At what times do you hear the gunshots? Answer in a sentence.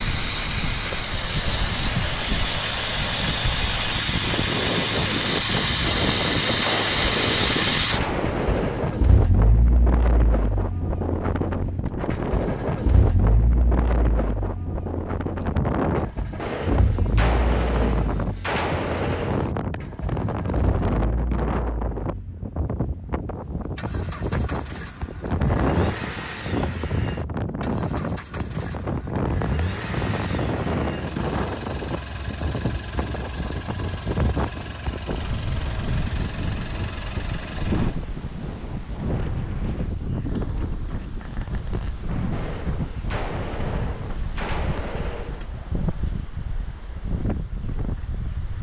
You can hear the gunshots from 5.8 to 8.9 s, from 16.4 to 19.6 s and from 42.3 to 45.5 s.